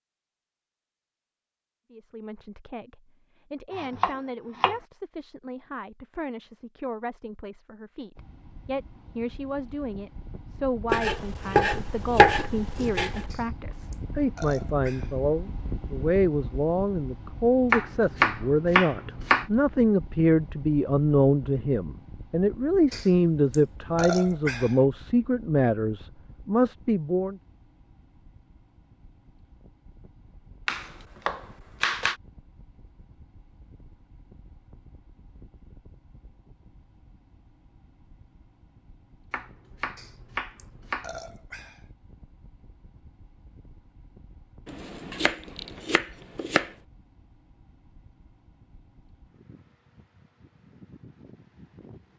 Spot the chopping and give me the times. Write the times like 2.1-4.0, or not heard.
3.8-4.8, 10.8-13.2, 17.7-19.4, 30.6-32.1, 39.3-41.1, 44.6-46.7.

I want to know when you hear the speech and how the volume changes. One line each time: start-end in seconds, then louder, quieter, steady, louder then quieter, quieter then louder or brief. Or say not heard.
1.9-27.4 louder.